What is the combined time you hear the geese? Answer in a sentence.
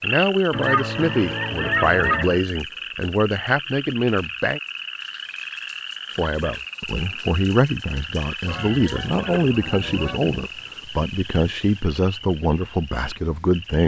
You can hear the geese for 4 seconds altogether.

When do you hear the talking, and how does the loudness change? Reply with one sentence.
You can hear the talking from 0.0 to 4.6 s, at a steady volume; and from 6.1 to 13.8 s, at a steady volume.